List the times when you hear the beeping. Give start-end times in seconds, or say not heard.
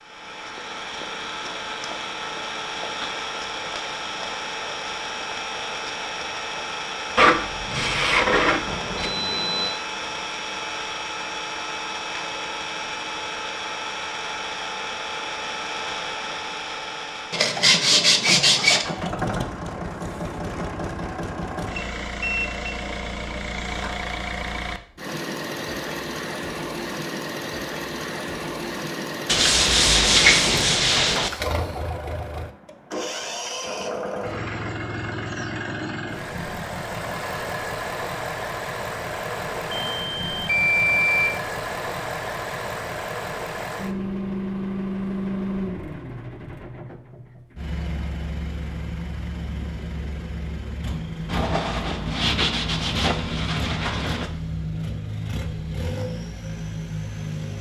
8.7-9.8, 21.7-22.6, 39.7-41.3.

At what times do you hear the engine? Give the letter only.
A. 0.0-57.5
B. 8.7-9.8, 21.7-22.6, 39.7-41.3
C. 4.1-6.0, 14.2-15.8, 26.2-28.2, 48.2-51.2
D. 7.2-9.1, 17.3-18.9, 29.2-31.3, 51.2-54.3
A.